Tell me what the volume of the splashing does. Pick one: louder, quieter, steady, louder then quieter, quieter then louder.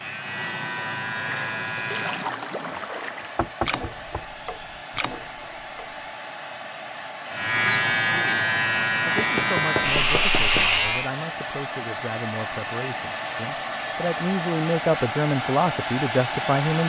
quieter.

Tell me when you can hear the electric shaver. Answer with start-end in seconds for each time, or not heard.
0.0-2.3, 7.3-11.1.